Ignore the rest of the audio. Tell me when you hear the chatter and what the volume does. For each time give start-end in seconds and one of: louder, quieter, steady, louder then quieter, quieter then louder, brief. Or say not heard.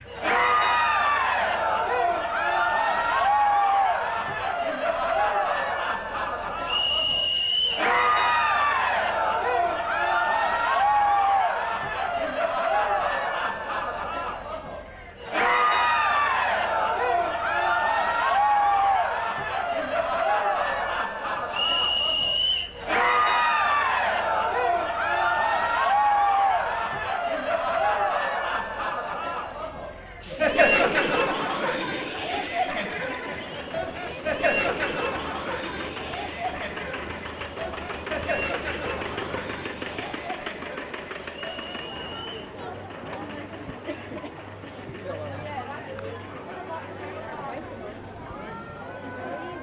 0.0-49.5 quieter.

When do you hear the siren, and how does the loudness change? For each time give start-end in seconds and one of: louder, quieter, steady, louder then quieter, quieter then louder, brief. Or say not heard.
not heard.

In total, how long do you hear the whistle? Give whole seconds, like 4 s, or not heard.
4 s.